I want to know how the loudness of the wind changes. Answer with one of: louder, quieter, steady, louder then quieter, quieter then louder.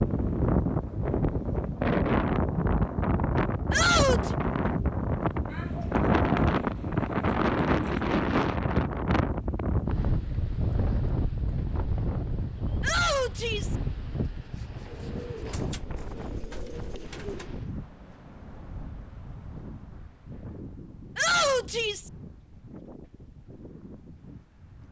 quieter.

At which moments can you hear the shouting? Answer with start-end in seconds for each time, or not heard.
3.7-4.3, 12.8-13.8, 21.1-22.1.